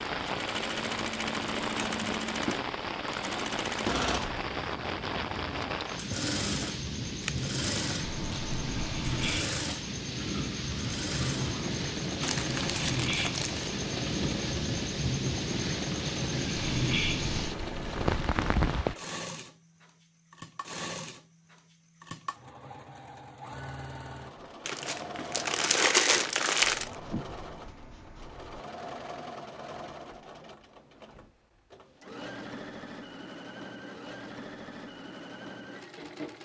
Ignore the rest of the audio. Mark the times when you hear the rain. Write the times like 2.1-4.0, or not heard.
0.0-18.9.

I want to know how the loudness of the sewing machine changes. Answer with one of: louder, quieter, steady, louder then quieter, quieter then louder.
quieter.